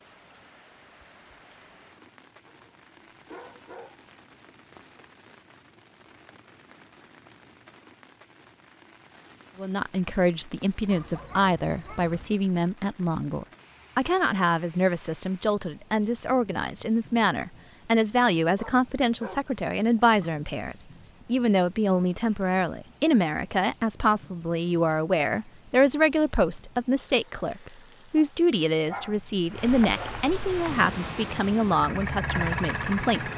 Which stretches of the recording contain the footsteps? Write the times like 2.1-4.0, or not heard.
not heard.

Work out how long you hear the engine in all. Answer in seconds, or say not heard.
3 s.